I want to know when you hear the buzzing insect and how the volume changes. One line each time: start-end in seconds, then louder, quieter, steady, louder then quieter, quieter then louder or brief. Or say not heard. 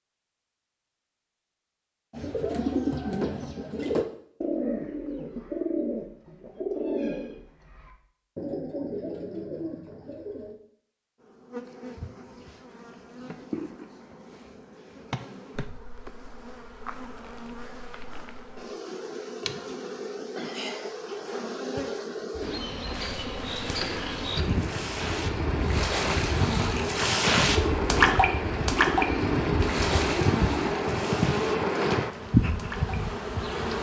11.2-33.7 louder.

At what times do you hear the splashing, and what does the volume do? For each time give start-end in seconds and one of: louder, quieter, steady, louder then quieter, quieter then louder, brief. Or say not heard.
22.9-33.0 louder then quieter.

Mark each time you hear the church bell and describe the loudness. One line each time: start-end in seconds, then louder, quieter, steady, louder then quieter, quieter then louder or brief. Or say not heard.
not heard.